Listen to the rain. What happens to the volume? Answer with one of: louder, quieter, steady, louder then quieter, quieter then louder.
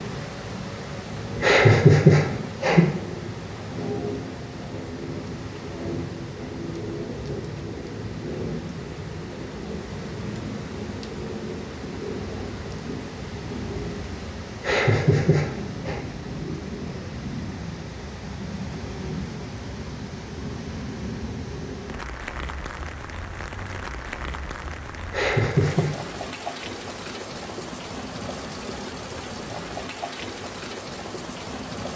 steady.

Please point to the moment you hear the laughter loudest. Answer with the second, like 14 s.
2 s.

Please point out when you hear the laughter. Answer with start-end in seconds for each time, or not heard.
1.4-2.9, 14.6-15.9, 25.1-25.9.